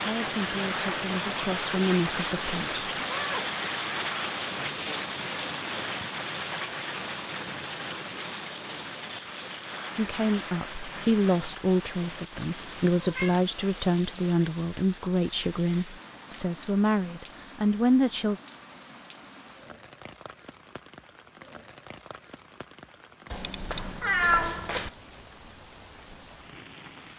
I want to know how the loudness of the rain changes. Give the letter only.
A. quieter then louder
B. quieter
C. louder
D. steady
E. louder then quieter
B.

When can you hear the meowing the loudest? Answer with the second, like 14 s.
24 s.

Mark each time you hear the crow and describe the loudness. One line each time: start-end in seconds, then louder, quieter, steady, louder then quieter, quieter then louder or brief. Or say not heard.
not heard.